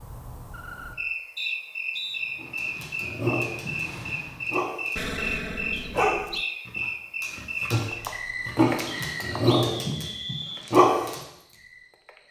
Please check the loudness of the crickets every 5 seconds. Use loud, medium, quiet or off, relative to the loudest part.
loud, loud, quiet.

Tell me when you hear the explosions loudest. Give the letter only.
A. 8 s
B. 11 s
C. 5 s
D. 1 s
C.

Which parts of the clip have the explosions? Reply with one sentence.
The explosions can be heard from 5.0 to 6.5 s.